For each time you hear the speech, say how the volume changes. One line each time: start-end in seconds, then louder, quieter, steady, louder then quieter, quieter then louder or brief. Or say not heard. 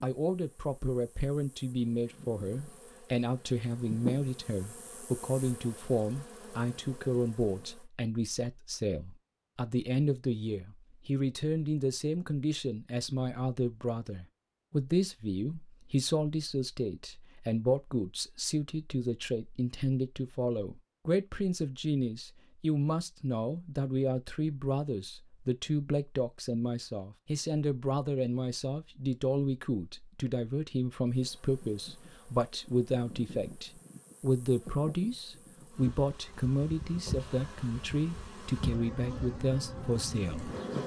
0.0-40.5 steady.